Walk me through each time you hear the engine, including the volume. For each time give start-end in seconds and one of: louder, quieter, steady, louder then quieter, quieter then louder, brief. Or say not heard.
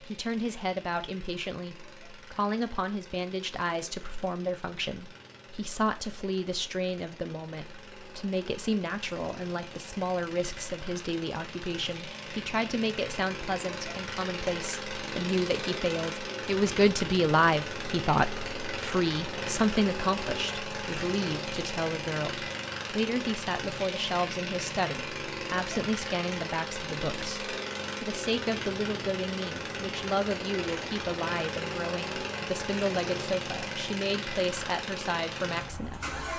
0.0-36.3 louder.